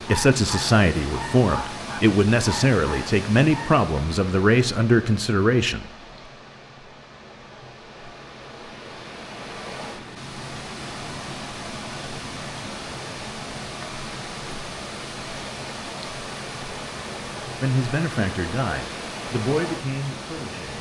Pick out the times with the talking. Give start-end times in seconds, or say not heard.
0.1-5.9, 17.6-20.7.